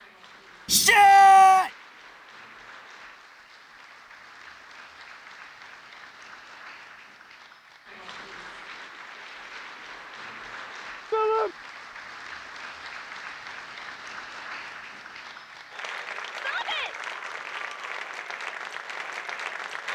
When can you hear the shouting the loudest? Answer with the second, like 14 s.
1 s.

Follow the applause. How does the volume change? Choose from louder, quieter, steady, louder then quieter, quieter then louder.
louder.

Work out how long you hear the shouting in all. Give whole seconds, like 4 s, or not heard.
2 s.